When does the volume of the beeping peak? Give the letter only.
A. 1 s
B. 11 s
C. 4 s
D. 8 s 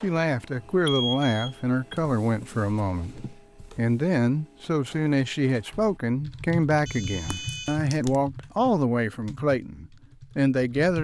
A.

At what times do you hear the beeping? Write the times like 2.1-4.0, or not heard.
0.8-1.9, 6.8-7.8.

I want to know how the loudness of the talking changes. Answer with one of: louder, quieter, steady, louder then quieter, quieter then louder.
steady.